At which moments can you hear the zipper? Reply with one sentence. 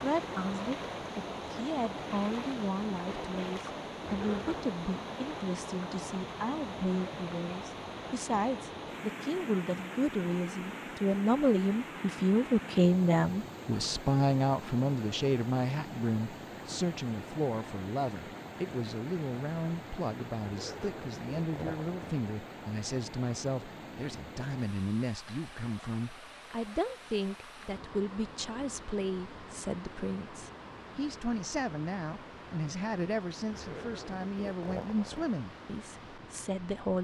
You can hear the zipper from 4.0 to 4.7 s, from 20.4 to 22.2 s and from 33.5 to 35.3 s.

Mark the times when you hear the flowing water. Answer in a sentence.
You can hear the flowing water from 0.0 to 36.9 s.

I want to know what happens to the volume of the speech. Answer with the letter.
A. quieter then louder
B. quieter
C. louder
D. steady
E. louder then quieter
E.